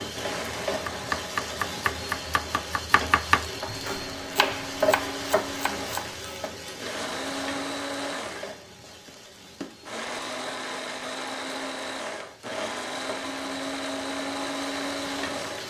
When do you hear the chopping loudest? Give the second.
3 s.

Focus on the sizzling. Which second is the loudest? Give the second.
5 s.